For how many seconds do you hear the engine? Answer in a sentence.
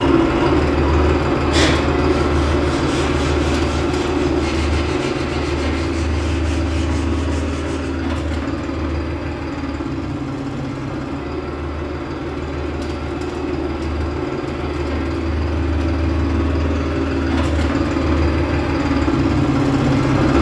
You can hear the engine for 20 seconds altogether.